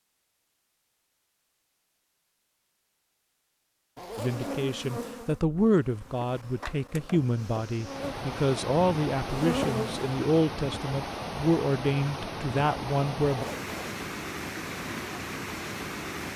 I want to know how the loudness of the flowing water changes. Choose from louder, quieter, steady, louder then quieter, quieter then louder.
steady.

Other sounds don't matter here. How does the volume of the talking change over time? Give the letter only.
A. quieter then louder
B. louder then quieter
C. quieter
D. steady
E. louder
D.